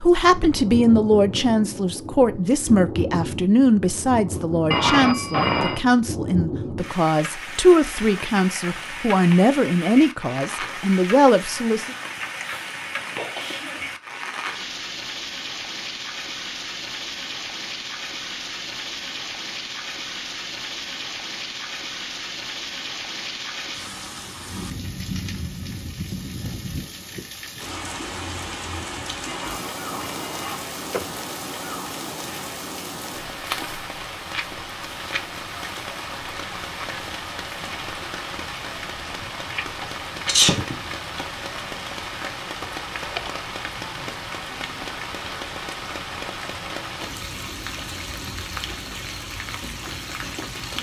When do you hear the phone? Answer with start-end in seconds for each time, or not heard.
4.7-5.8, 29.2-31.2, 42.6-43.4.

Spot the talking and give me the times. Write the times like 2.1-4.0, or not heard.
0.0-11.9.